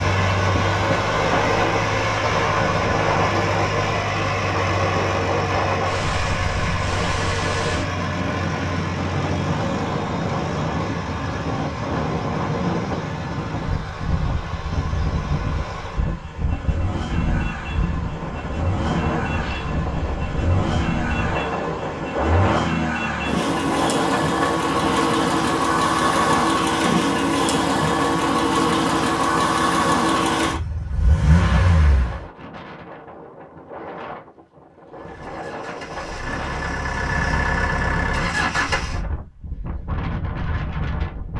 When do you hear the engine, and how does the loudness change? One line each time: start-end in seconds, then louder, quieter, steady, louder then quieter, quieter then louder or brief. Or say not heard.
0.0-32.3 quieter then louder
34.9-39.0 louder.